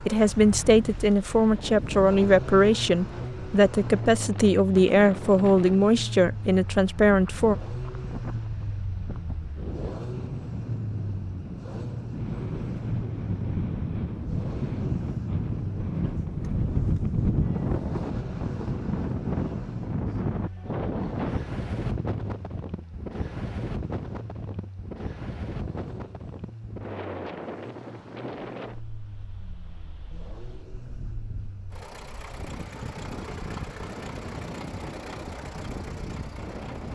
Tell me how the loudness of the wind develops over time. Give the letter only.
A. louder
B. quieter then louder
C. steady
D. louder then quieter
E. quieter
D.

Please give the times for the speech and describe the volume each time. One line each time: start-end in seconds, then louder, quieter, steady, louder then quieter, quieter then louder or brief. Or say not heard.
0.1-7.5 steady.